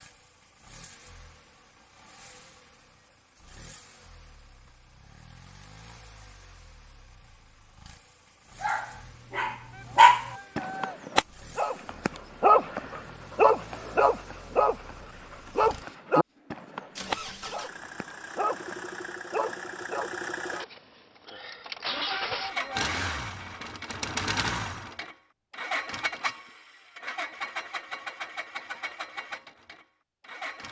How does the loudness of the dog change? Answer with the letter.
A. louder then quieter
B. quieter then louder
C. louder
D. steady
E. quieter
E.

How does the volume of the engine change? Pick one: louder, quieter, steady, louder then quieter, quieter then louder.
louder.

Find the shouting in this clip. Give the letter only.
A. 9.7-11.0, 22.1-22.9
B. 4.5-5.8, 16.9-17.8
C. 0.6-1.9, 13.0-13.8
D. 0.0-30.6
A.